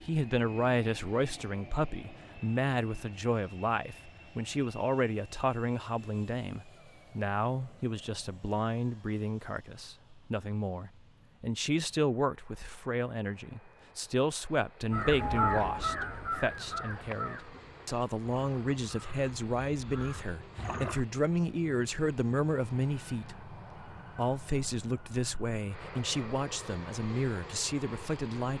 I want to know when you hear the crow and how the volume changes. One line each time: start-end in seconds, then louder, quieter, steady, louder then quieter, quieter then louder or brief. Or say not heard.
14.9-21.1 quieter then louder.